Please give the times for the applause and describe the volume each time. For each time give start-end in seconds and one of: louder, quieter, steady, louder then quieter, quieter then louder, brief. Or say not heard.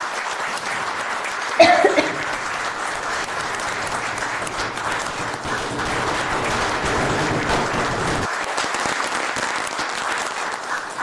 0.0-10.9 steady.